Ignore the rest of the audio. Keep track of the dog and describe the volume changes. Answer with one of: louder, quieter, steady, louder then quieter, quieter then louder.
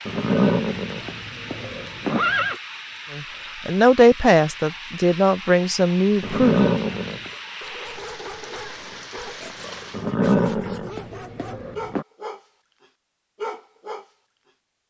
louder.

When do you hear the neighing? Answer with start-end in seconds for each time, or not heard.
0.1-2.5, 6.2-7.3, 9.9-12.1.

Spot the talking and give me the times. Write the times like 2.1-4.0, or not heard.
3.1-6.7.